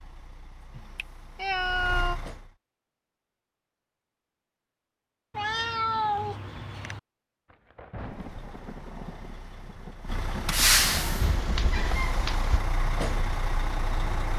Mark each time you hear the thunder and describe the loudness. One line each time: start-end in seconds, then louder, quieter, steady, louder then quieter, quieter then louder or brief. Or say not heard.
7.5-11.9 quieter then louder.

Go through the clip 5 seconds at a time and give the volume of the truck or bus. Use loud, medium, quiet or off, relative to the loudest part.
quiet, quiet, loud.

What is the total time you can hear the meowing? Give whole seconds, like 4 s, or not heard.
5 s.